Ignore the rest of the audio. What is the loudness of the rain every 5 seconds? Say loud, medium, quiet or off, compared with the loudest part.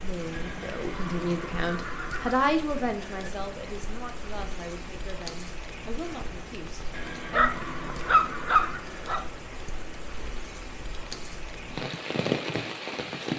medium, medium, loud.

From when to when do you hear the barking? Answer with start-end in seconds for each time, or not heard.
7.3-9.2.